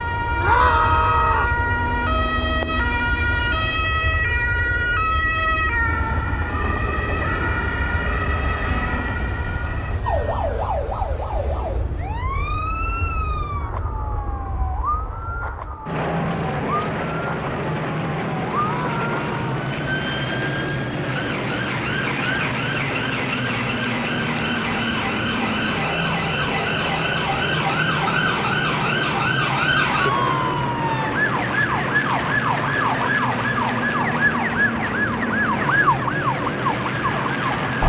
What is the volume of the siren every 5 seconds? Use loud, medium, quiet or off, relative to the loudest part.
loud, loud, medium, medium, medium, loud, loud, loud.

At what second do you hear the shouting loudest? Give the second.
1 s.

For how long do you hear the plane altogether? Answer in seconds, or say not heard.
38 s.